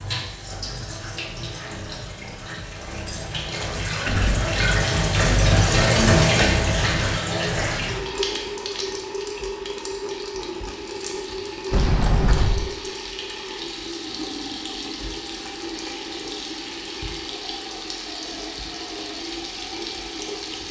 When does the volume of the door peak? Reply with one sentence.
The loudest moment of the door is at 12 seconds.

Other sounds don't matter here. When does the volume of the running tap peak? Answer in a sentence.
The loudest moment of the running tap is at 6 seconds.